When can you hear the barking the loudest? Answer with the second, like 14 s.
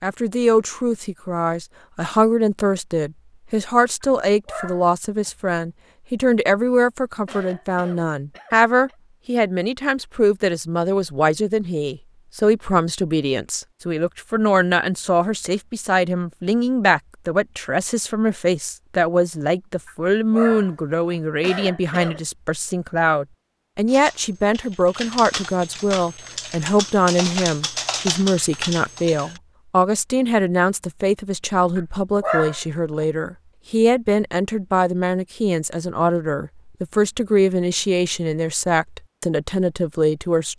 32 s.